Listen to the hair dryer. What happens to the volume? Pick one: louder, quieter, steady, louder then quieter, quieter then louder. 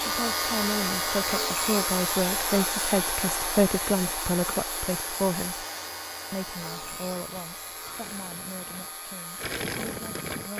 quieter.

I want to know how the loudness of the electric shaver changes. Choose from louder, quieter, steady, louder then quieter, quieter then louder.
quieter.